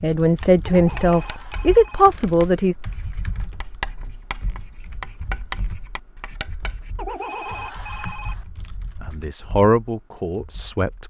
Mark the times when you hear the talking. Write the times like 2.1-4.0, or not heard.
0.0-2.8, 9.0-11.0.